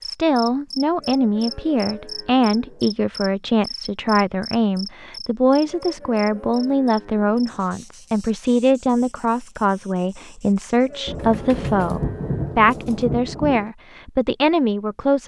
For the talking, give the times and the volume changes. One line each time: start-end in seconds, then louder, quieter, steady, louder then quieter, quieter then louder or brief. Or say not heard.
0.1-15.2 steady.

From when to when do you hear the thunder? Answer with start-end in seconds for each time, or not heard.
11.1-13.7.